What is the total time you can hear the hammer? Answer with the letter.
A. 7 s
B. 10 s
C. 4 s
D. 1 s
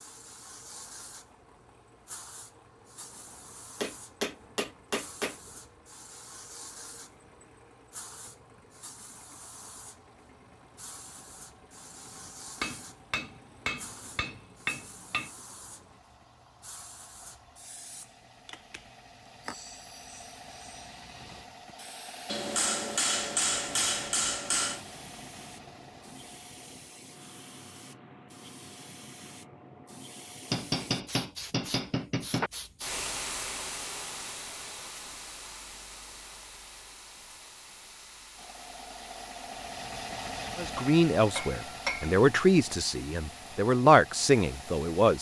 B.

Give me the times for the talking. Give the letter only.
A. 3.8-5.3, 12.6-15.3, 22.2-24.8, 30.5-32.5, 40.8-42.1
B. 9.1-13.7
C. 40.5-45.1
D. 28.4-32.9
C.